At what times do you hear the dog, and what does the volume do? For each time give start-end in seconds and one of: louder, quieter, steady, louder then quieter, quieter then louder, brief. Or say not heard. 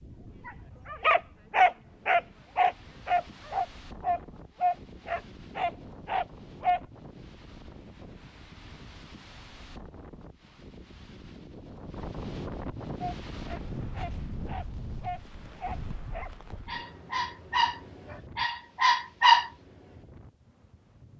0.5-6.8 quieter
13.0-19.5 louder.